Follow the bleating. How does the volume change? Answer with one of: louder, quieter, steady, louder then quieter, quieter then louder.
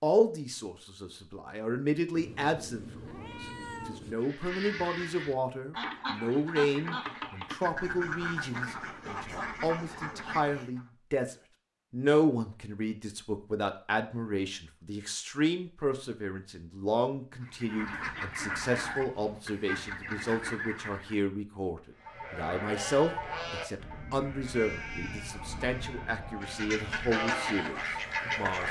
quieter then louder.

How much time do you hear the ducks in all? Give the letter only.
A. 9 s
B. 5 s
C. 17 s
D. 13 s
D.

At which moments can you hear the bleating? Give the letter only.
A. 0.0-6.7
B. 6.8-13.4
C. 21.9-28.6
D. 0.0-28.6
C.